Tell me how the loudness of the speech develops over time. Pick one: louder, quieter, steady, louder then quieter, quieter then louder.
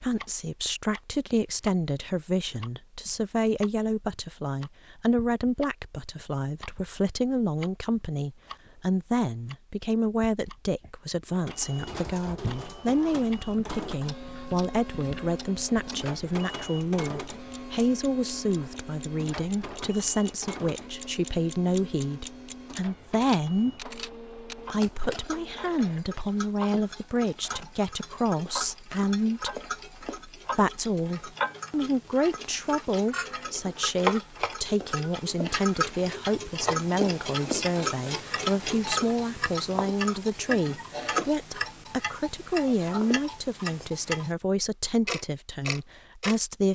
steady.